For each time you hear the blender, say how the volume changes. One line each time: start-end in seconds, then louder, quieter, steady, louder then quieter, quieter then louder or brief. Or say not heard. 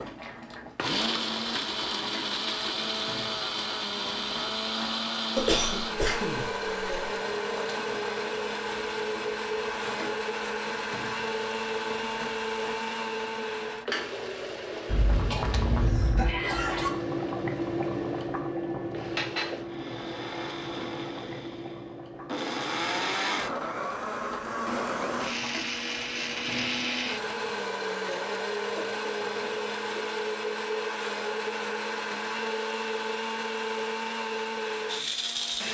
0.0-35.6 quieter then louder.